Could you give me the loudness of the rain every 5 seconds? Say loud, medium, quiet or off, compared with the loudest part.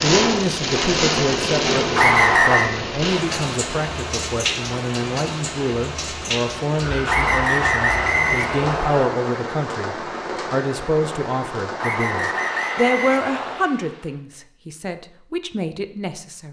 loud, medium, medium, off.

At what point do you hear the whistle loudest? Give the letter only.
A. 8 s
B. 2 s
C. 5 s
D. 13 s
B.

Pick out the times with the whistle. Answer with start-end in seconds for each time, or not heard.
1.9-2.7, 7.0-9.1, 11.8-13.6.